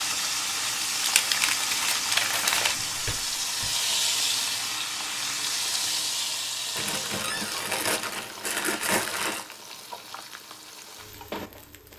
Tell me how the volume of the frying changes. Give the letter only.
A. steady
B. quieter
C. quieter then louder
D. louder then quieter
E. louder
B.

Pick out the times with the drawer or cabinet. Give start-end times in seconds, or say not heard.
2.5-3.7, 7.2-7.7.